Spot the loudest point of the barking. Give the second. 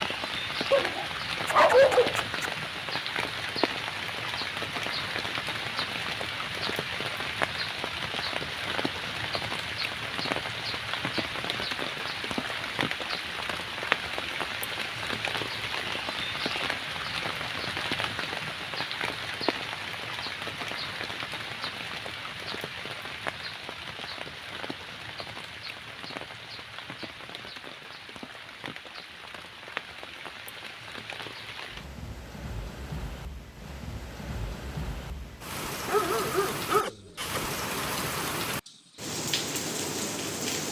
2 s.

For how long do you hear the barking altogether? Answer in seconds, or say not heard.
3 s.